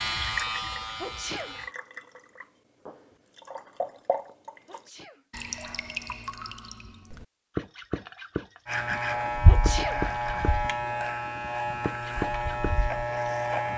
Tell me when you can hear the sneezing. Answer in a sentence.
You can hear the sneezing from 1.0 to 1.6 s, from 4.7 to 5.2 s and from 9.4 to 10.1 s.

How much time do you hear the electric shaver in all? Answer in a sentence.
The electric shaver can be heard for 7 seconds in total.